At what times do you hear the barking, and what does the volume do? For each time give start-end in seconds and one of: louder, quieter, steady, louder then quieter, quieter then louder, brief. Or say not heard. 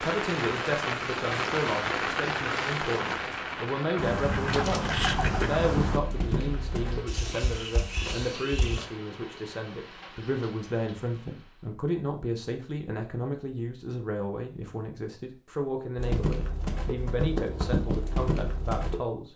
not heard.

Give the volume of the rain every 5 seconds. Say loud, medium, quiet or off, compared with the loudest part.
loud, quiet, quiet, off.